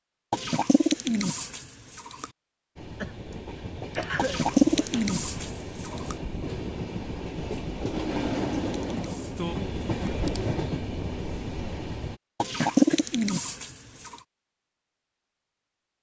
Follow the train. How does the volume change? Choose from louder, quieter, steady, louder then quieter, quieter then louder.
louder.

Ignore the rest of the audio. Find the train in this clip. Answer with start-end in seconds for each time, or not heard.
2.8-12.2.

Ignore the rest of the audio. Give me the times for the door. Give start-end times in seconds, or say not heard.
not heard.